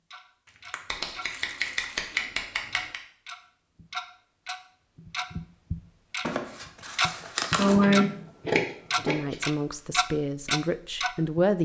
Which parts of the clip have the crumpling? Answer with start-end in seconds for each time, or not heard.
0.5-2.1, 6.2-7.8.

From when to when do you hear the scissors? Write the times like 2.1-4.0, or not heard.
0.8-3.0, 7.5-9.4.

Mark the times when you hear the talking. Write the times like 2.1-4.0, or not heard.
8.9-11.6.